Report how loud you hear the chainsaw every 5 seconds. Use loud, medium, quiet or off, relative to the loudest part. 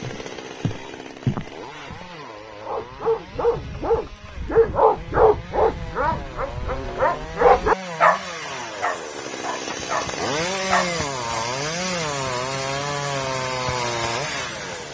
quiet, medium, loud.